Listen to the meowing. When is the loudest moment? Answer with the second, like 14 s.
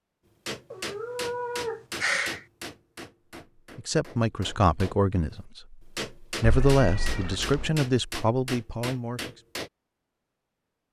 2 s.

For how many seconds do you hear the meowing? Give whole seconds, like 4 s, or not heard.
3 s.